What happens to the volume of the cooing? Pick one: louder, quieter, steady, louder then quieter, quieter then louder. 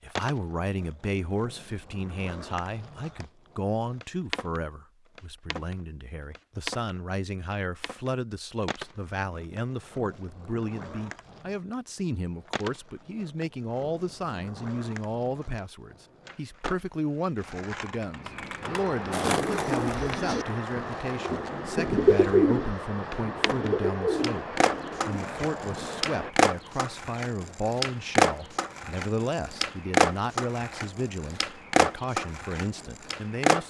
louder then quieter.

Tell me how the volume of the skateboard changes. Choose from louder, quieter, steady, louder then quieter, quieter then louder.
louder.